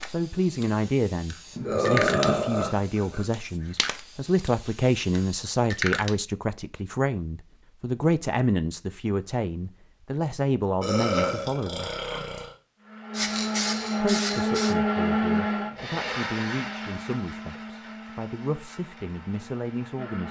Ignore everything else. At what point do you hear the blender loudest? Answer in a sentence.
The volume of the blender peaks at 15 seconds.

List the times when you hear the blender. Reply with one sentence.
The blender can be heard from 12.8 to 20.2 s.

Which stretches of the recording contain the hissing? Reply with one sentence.
You can hear the hissing from 0.0 to 6.1 s and from 13.2 to 14.8 s.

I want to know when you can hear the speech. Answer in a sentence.
You can hear the speech from 0.1 to 11.9 s and from 14.0 to 20.2 s.